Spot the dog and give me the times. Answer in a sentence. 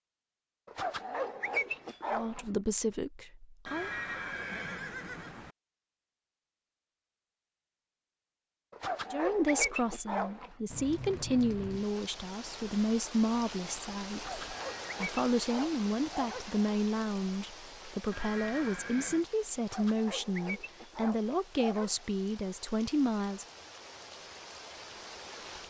The dog can be heard from 0.7 to 2.5 s, from 8.7 to 10.5 s, from 14.1 to 16.6 s and from 19.6 to 22.1 s.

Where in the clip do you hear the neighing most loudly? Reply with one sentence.
The volume of the neighing peaks at 4 seconds.